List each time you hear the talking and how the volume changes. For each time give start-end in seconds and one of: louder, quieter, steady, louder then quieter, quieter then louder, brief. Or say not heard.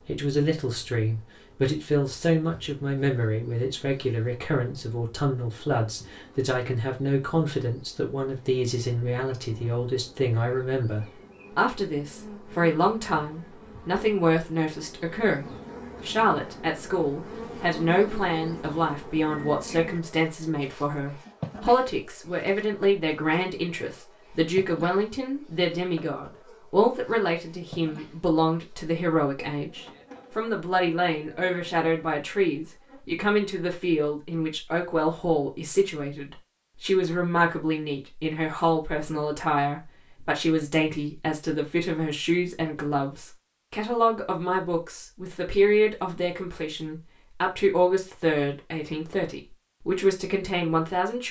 0.1-51.2 steady.